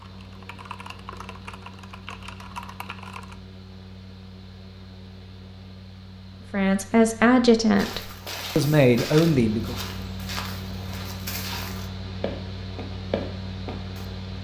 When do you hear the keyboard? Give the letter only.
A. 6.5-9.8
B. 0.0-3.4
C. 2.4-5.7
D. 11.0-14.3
B.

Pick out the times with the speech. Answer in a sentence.
The speech can be heard from 6.5 to 9.8 s.